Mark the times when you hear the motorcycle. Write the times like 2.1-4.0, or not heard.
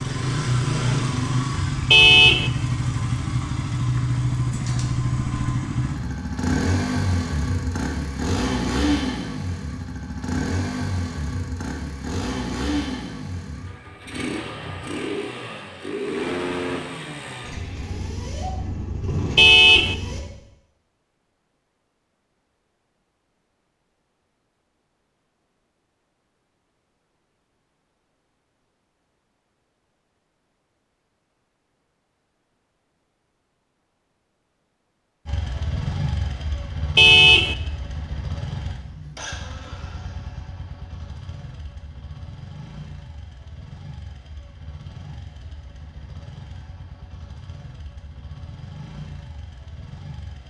0.0-20.2, 35.2-50.4.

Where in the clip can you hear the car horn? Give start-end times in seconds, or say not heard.
1.9-2.5, 19.4-19.9, 37.0-37.5.